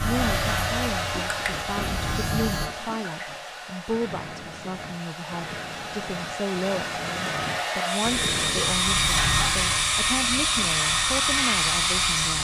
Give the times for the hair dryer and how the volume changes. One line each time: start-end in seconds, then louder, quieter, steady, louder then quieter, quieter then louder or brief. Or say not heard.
0.0-12.4 quieter then louder.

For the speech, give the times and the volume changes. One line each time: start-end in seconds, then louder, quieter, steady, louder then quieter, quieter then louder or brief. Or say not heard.
0.0-12.4 steady.